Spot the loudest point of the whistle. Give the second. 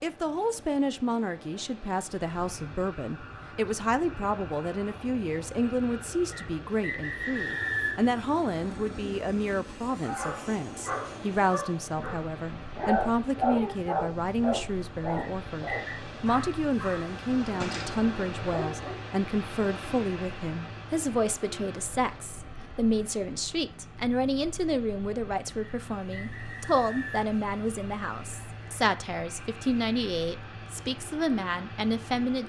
8 s.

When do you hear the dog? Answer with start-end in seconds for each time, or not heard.
10.0-19.1.